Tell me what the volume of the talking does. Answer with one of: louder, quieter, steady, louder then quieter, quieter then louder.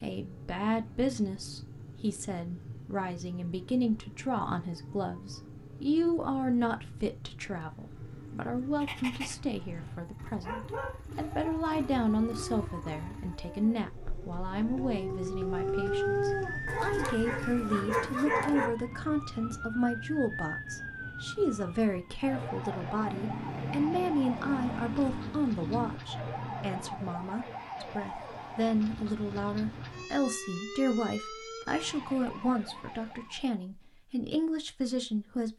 steady.